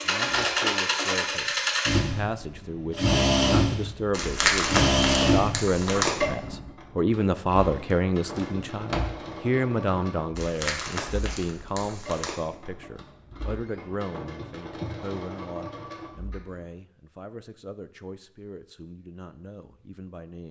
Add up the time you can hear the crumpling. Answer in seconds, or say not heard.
4 s.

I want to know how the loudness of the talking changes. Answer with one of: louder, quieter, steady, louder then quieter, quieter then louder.
louder then quieter.